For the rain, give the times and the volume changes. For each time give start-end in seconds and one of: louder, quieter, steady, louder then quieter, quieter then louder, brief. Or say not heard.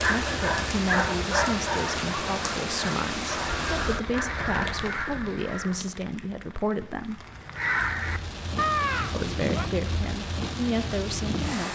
0.0-11.7 quieter then louder.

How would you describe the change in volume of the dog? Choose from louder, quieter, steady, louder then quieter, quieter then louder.
quieter.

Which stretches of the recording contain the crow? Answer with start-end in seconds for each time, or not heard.
3.7-5.8, 7.5-9.7.